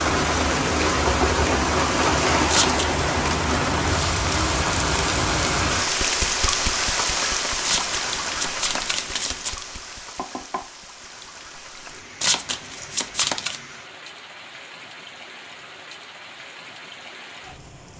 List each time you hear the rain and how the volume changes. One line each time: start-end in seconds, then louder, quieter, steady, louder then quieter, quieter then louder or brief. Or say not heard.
0.0-17.9 quieter.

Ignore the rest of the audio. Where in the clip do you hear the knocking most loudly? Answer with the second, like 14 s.
1 s.